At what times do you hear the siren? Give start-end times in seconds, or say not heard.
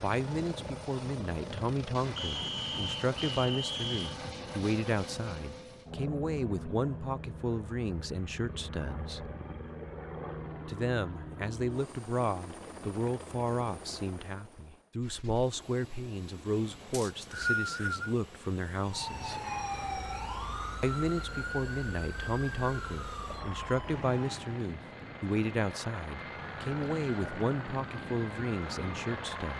18.8-24.8, 26.2-29.5.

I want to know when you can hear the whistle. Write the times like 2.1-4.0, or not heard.
2.1-4.2, 16.9-18.1.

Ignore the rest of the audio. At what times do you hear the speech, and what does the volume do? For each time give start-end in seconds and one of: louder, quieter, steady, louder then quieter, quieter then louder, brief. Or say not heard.
0.0-9.3 steady
10.7-19.4 steady
20.8-29.5 steady.